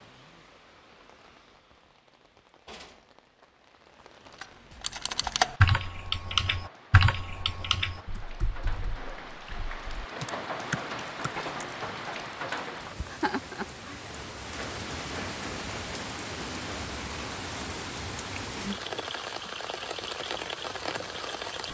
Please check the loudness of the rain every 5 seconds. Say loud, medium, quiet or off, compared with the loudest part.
quiet, medium, loud, loud, loud.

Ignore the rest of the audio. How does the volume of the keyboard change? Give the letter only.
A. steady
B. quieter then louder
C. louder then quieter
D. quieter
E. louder
B.